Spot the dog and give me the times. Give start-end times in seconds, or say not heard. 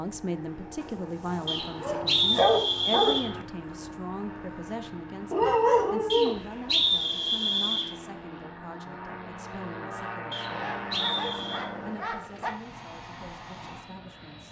0.8-3.1, 5.3-6.4, 10.5-12.5.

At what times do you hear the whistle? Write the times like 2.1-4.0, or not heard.
1.4-3.2, 6.1-7.9, 10.3-11.7.